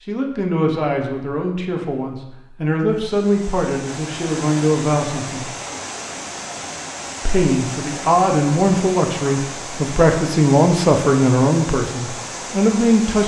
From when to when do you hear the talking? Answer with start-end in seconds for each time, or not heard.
0.1-5.5, 7.2-13.2.